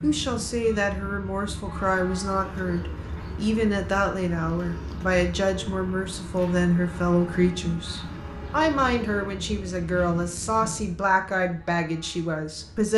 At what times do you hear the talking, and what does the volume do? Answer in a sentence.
You can hear the talking from 0.0 to 12.9 s, at a steady volume.